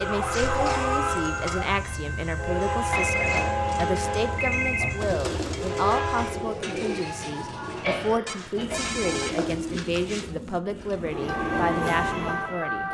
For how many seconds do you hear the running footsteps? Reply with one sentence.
The running footsteps can't be heard in this clip.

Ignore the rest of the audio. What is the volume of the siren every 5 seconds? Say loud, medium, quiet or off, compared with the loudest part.
loud, off, loud.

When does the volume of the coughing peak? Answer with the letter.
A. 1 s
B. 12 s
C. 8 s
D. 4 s
C.